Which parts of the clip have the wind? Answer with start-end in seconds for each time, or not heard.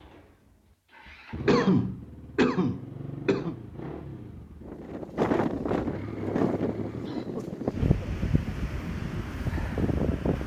4.7-10.4.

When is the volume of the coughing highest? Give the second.
2 s.